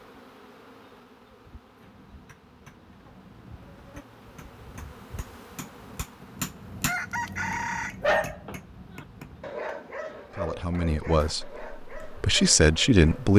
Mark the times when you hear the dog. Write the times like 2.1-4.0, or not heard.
7.6-13.3.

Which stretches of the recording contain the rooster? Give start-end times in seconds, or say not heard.
6.8-8.2.